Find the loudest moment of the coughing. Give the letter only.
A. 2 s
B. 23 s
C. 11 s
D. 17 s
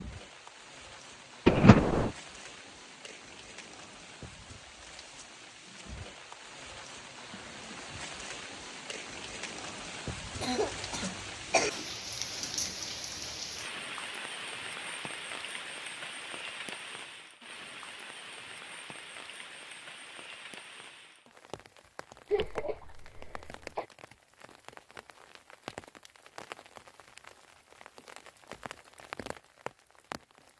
A.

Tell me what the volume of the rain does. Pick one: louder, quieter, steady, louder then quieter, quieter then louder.
louder then quieter.